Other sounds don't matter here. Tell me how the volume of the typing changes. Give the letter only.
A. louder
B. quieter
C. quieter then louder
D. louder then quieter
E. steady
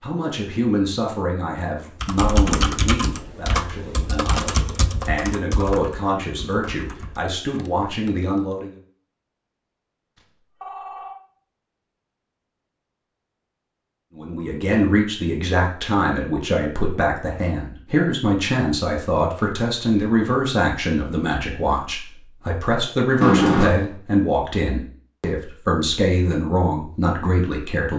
B.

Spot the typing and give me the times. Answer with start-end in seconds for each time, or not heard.
2.0-8.6.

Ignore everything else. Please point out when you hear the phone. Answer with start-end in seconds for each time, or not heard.
10.2-11.2, 23.2-23.9.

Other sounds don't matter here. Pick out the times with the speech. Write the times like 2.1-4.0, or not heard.
0.0-8.8, 14.2-27.9.